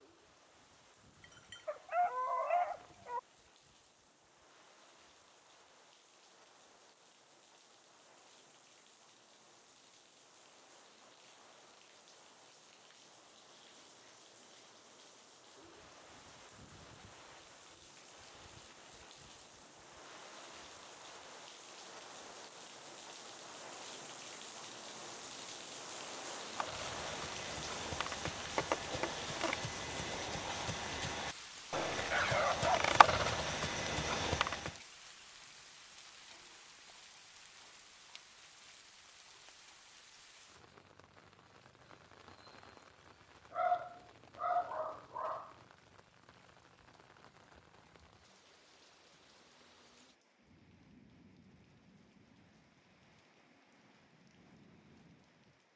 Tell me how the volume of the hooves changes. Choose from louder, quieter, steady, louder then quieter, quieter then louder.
louder.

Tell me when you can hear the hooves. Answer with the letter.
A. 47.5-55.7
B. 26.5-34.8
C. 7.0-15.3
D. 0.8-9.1
B.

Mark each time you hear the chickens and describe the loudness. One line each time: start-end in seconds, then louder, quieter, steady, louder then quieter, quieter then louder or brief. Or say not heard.
not heard.